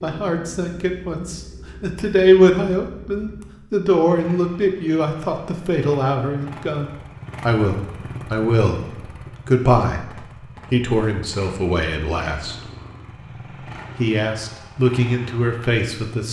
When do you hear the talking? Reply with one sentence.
The talking can be heard from 0.0 to 10.1 s, from 10.7 to 12.6 s and from 13.9 to 16.2 s.